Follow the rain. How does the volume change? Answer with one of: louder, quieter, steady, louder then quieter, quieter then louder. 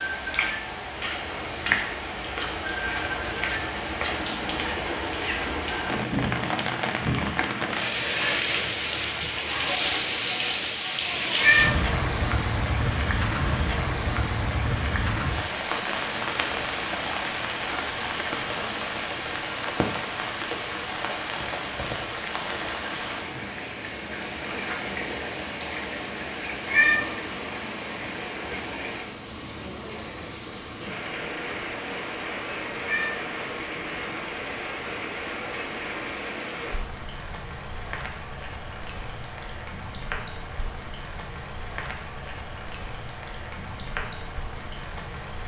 quieter.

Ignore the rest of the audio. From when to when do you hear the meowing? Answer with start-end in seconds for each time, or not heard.
11.3-11.8, 26.6-27.1, 32.8-33.2.